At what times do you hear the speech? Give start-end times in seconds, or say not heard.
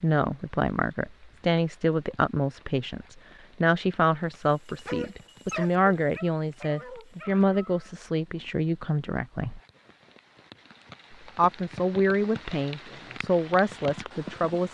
0.0-9.6, 11.3-14.6.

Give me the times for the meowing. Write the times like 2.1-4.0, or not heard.
not heard.